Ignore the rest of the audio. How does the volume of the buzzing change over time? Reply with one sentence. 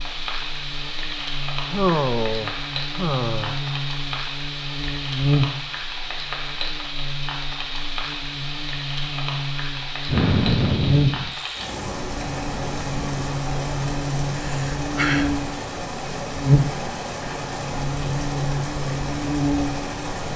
The volume of the buzzing goes up.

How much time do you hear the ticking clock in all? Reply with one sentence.
The ticking clock can't be heard in this clip.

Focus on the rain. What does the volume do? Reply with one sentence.
The loudness of the rain stays about the same.